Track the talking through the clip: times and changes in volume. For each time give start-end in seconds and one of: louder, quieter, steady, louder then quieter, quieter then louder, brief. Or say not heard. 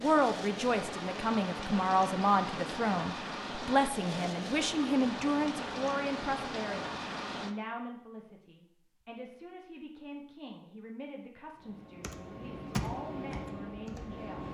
0.0-14.4 quieter.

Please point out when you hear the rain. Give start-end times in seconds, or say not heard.
0.0-7.5.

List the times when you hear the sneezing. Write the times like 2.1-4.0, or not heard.
not heard.